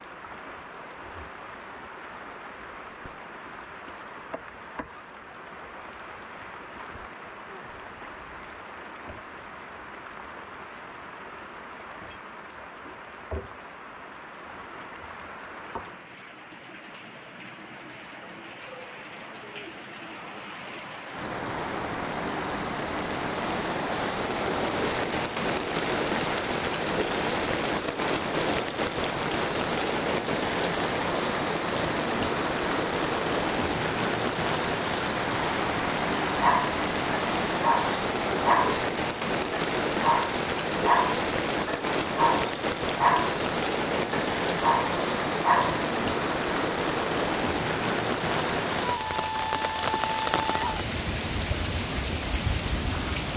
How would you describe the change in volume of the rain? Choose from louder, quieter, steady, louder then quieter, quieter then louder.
louder.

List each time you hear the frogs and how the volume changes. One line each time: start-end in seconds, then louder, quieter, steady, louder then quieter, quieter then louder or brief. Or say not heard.
not heard.